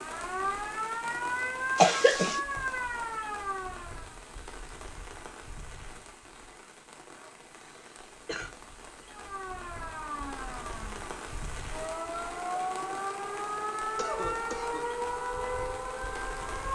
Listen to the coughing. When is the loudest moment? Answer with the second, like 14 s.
2 s.